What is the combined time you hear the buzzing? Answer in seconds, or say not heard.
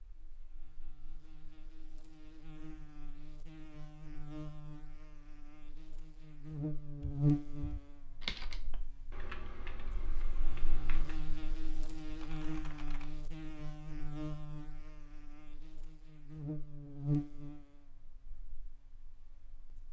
20 s.